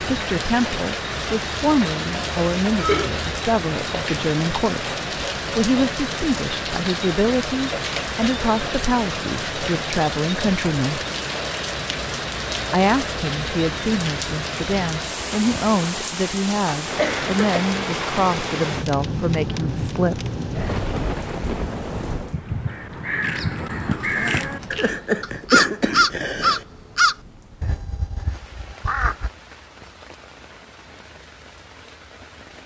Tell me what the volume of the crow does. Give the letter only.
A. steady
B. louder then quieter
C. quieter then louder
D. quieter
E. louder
B.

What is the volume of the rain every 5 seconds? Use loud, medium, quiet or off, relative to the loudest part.
loud, loud, loud, loud, loud, quiet, quiet.